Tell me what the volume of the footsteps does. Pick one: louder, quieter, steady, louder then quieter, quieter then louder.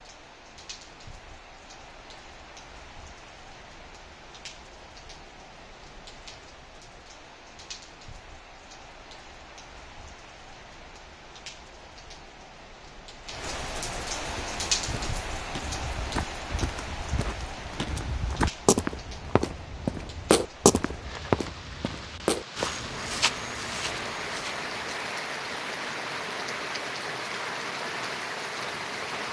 louder then quieter.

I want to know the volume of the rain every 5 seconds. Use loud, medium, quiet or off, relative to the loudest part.
quiet, quiet, loud, medium, loud, loud.